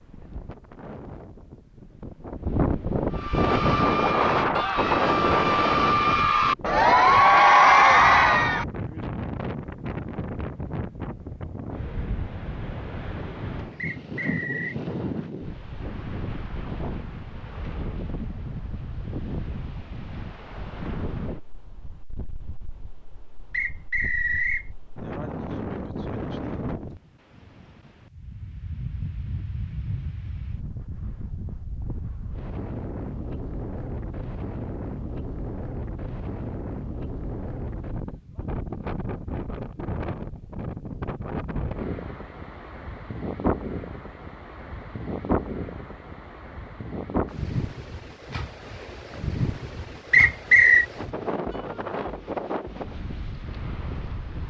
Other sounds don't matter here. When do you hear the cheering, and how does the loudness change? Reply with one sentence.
The cheering can be heard from 3.1 to 8.7 s, getting louder.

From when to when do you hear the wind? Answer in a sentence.
The wind can be heard from 0.0 to 54.4 s.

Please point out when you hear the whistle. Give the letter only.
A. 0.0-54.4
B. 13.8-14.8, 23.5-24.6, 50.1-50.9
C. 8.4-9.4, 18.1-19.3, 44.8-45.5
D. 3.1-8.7
B.